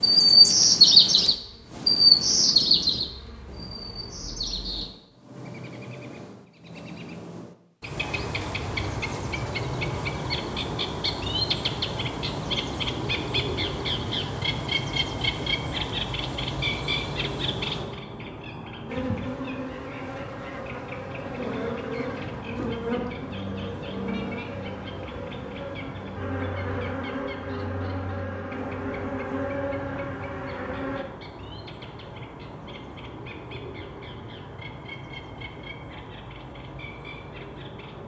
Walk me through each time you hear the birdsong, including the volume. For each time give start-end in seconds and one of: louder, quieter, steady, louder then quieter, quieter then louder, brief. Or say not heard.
0.0-38.0 quieter.